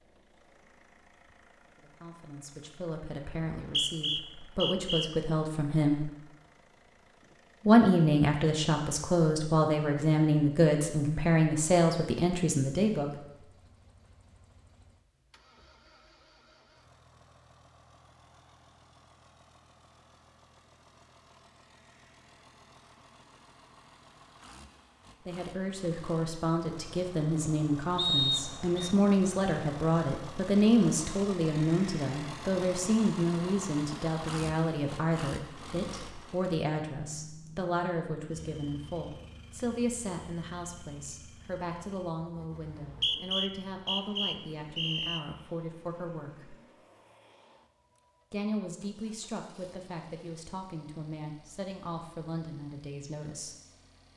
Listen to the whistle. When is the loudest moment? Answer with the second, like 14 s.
28 s.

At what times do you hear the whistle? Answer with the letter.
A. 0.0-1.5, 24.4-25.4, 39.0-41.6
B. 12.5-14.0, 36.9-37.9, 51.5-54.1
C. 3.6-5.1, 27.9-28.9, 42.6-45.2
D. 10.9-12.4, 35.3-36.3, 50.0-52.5
C.